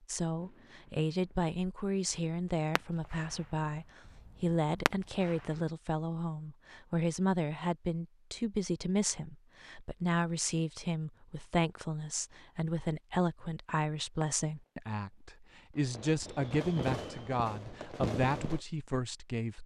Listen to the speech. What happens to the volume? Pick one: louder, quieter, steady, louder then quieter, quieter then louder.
steady.